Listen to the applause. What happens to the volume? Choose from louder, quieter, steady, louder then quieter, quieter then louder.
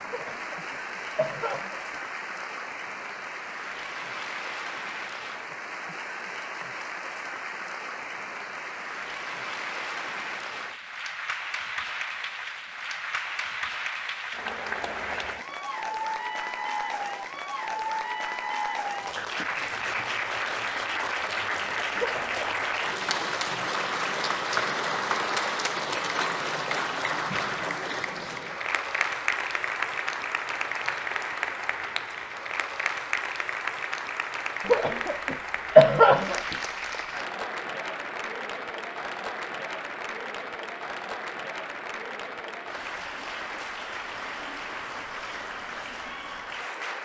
louder then quieter.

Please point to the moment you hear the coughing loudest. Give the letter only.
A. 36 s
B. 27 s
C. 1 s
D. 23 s
A.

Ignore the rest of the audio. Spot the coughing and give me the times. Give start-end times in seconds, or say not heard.
0.1-2.0, 21.9-22.5, 34.6-36.5.